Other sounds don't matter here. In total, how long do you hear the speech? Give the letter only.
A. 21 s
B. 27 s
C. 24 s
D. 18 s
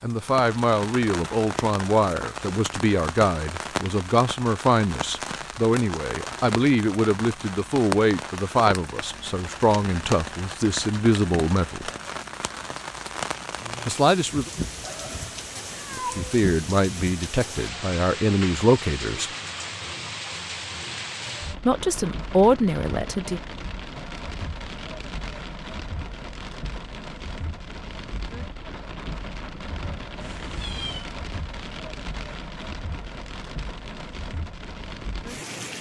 D.